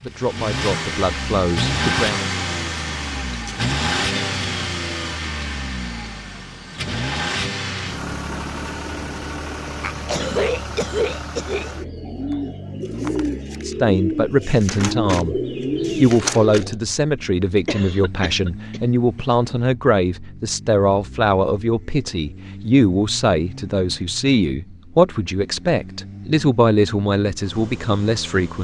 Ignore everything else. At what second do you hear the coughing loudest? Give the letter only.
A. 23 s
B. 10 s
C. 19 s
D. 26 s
B.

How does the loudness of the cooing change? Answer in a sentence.
The loudness of the cooing goes up.